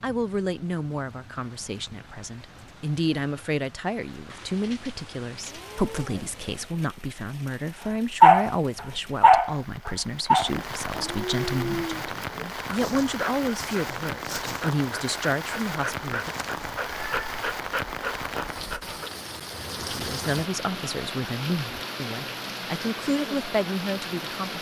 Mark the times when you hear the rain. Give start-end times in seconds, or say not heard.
0.0-24.5.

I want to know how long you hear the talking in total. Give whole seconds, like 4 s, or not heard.
21 s.